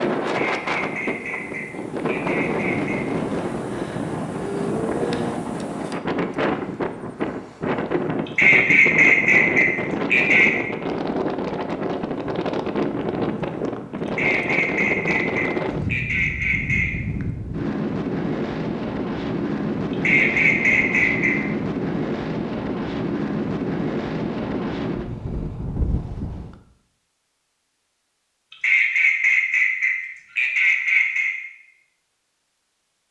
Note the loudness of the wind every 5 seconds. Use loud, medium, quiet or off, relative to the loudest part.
loud, loud, loud, loud, loud, medium, off.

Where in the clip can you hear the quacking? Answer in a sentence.
You can hear the quacking from 0.2 to 3.0 s, from 8.2 to 10.5 s, from 14.1 to 16.9 s, from 19.9 to 21.4 s and from 28.5 to 31.4 s.